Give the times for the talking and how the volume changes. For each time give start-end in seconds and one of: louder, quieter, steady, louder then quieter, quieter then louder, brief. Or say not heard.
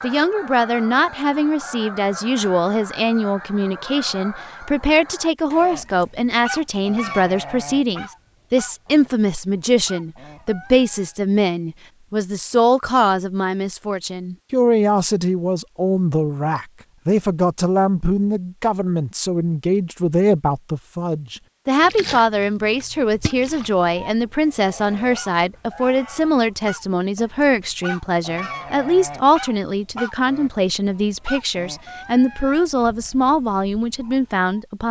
0.0-34.8 steady.